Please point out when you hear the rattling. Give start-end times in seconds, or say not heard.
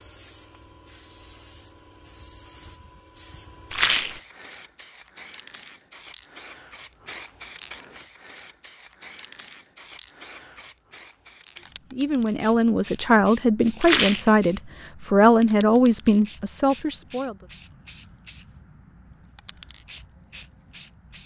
3.7-4.2, 13.8-14.3.